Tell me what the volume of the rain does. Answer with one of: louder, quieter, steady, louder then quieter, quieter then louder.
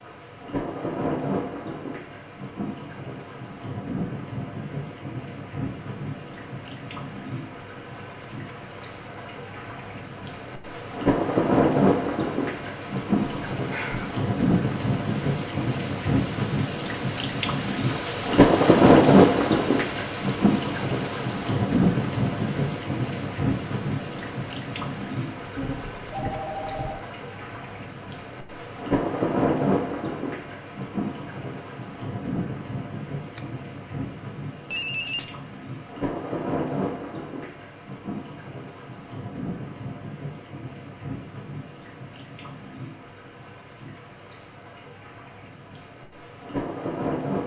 louder then quieter.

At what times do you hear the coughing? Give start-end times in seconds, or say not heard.
not heard.